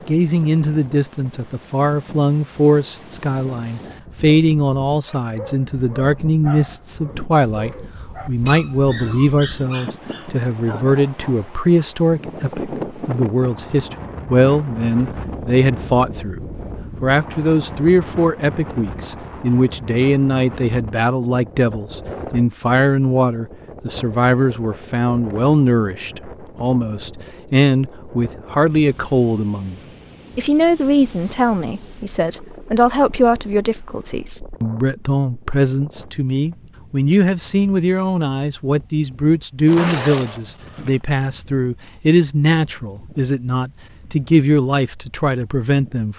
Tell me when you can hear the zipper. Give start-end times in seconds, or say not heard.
39.6-41.0.